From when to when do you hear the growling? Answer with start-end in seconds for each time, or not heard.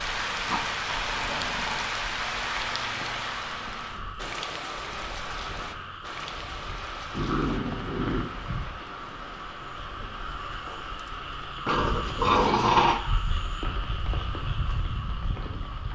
0.5-1.9, 7.1-8.3, 11.7-13.0.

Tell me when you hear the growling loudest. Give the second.
13 s.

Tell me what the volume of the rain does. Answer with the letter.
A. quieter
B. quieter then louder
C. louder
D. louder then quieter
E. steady
A.